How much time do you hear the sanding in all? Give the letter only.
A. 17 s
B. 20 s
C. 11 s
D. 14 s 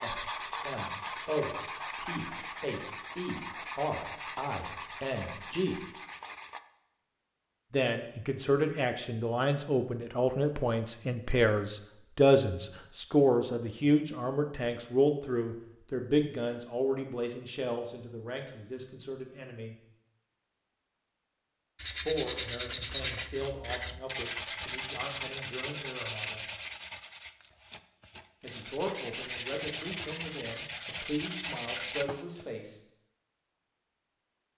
A.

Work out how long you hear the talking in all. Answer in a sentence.
The talking can be heard for 27 seconds in total.